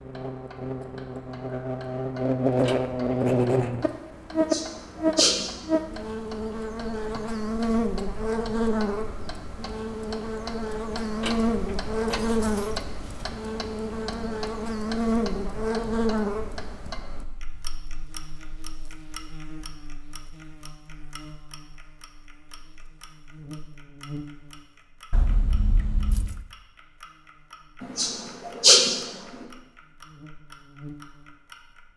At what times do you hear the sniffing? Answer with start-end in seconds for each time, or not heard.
4.3-5.5, 27.8-29.0.